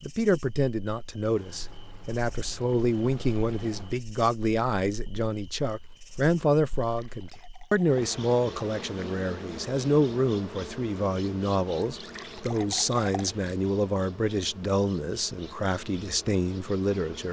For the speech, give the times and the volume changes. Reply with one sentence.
You can hear the speech from 0.0 to 17.2 s, at a steady volume.